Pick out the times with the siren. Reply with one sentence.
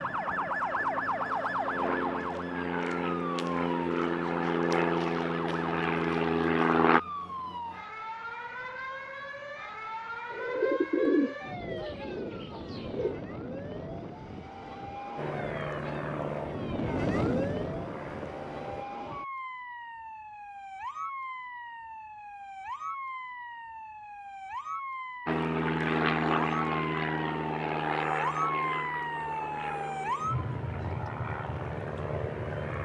The siren can be heard from 0.0 to 32.7 s.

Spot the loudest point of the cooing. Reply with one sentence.
The volume of the cooing peaks at 11 seconds.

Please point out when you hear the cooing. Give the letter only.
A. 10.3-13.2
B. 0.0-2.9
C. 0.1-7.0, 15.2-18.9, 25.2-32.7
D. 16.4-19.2
A.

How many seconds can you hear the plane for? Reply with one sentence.
The plane can be heard for 18 seconds in total.